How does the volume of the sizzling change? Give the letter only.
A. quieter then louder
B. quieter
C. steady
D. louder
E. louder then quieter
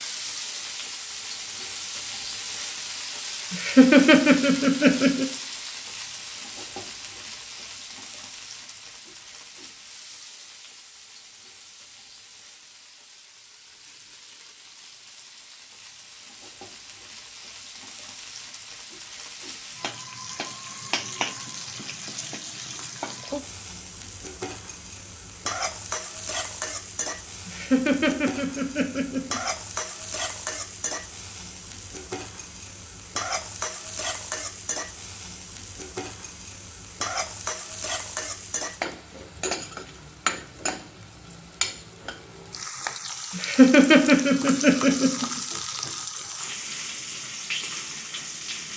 A.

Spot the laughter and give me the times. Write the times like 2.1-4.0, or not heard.
3.5-5.2, 27.4-29.4, 43.4-45.3.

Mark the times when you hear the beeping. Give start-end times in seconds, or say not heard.
not heard.